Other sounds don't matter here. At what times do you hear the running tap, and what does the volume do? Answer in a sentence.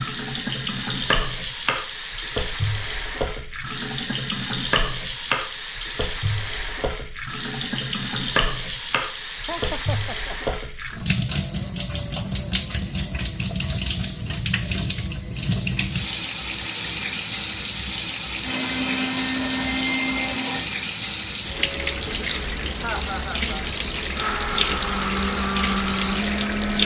You can hear the running tap from 0.0 to 26.8 s, at a steady volume.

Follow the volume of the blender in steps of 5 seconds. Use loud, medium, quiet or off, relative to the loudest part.
off, off, off, loud, loud, loud.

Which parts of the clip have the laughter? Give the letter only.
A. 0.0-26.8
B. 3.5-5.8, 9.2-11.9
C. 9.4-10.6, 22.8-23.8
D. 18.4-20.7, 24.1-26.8
C.